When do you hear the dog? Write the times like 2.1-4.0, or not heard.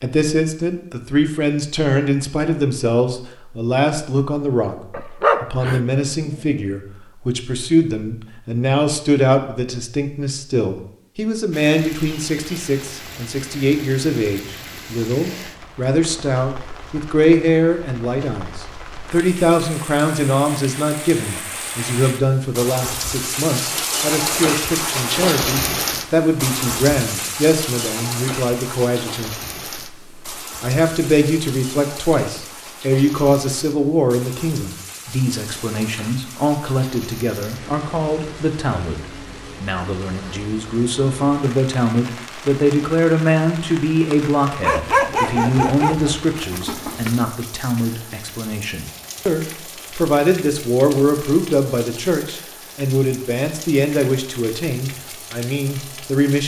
4.9-6.5, 44.6-47.2.